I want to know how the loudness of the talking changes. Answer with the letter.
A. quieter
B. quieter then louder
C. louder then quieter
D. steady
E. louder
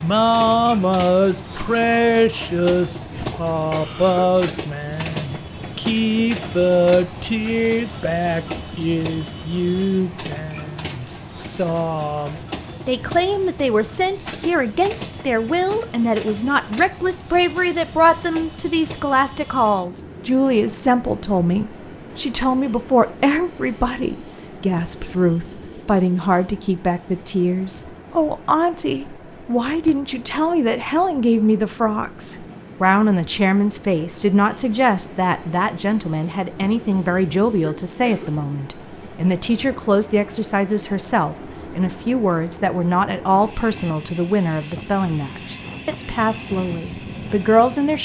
D.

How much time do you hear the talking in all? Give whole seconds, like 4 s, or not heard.
48 s.